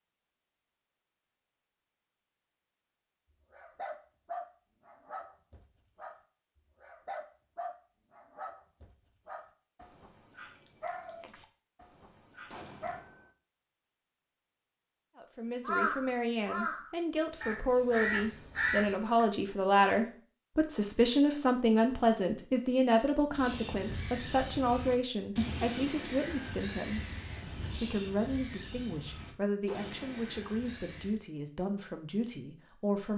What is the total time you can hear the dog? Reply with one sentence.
The dog can be heard for 9 seconds in total.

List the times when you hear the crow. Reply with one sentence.
The crow can be heard from 15.7 to 19.2 s and from 23.3 to 31.2 s.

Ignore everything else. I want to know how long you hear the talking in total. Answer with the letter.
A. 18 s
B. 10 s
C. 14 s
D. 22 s
A.